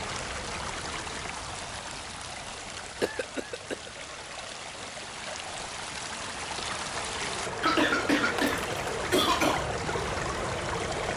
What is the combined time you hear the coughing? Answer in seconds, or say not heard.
3 s.